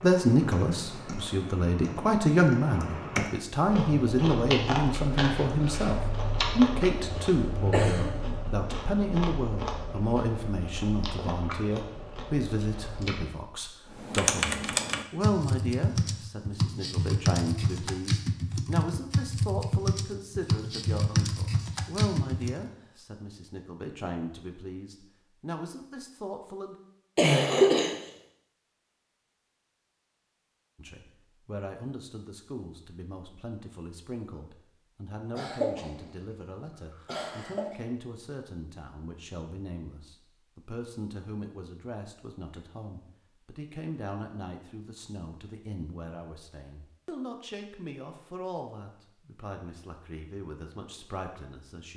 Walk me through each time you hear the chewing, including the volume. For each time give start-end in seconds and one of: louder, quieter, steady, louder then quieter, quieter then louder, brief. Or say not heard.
3.6-13.2 quieter.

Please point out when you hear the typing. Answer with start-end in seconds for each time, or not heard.
0.0-3.4, 13.9-22.6.